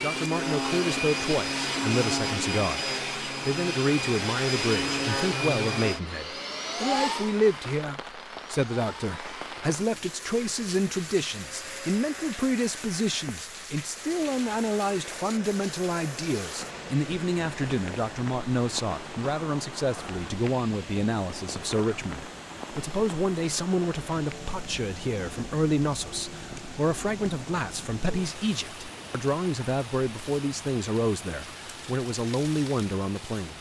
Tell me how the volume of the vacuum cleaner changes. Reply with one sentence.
The loudness of the vacuum cleaner goes down.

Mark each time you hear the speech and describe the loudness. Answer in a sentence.
The speech can be heard from 0.0 to 33.5 s, at a steady volume.